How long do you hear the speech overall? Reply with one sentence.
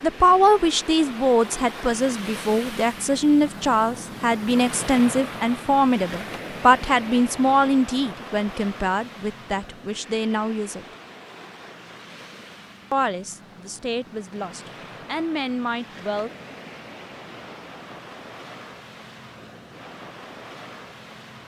You can hear the speech for 14 seconds altogether.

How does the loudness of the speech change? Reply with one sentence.
The loudness of the speech goes down.